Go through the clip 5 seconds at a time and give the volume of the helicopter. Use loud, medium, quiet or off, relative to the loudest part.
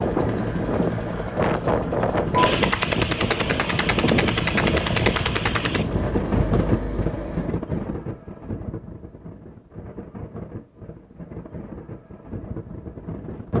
loud, loud, off.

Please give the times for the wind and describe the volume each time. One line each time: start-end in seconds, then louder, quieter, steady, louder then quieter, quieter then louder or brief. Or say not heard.
0.0-13.5 quieter.